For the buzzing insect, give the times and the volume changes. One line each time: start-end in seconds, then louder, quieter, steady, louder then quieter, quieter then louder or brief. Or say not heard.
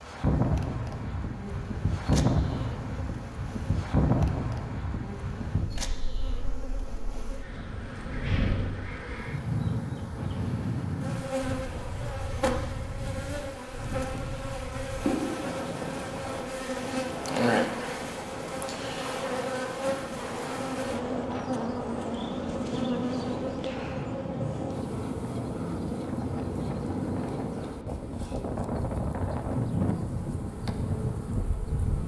0.0-32.0 louder then quieter.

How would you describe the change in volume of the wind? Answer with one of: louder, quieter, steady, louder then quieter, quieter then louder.
quieter then louder.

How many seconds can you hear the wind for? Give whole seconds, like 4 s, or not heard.
32 s.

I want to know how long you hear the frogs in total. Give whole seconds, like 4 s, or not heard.
not heard.